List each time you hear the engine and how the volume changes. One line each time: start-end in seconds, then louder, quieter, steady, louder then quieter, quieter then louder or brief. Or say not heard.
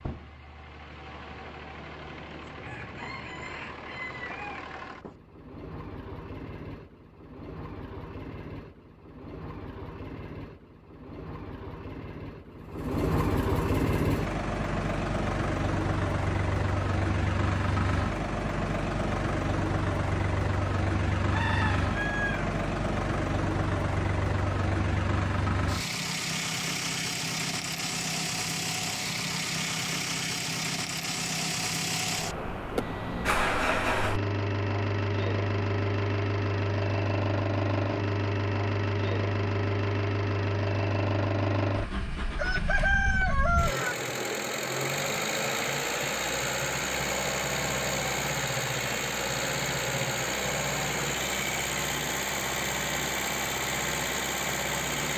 0.0-55.1 louder.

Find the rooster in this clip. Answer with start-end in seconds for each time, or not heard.
2.5-5.2, 21.3-22.6, 42.4-44.0.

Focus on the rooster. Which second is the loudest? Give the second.
43 s.